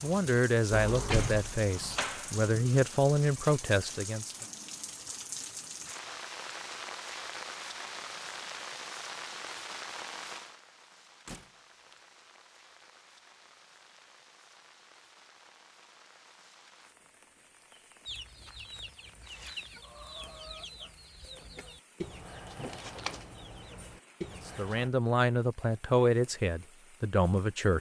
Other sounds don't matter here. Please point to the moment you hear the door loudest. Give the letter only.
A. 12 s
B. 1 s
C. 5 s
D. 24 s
B.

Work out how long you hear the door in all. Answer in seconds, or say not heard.
3 s.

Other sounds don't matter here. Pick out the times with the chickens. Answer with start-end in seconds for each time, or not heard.
18.1-24.9.